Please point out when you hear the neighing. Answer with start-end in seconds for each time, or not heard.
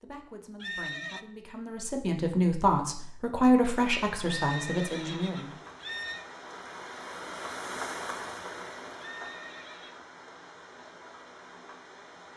0.6-1.2, 4.2-6.2, 8.9-10.0.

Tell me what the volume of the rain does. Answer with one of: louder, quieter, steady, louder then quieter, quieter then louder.
louder then quieter.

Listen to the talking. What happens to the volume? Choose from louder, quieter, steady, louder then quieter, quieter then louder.
louder then quieter.